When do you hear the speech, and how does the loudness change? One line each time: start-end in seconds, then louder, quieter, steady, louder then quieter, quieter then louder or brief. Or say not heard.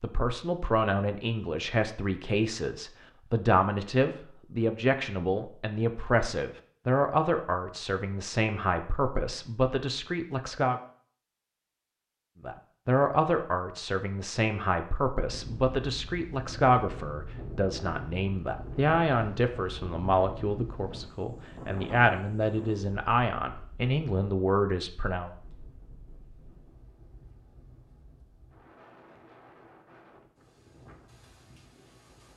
0.0-10.8 steady
12.4-25.3 steady.